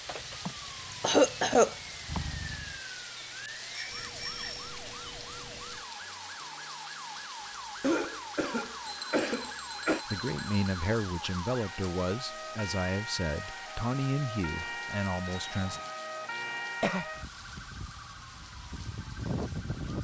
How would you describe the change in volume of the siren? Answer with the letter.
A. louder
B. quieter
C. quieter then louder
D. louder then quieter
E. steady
A.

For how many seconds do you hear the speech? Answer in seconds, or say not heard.
6 s.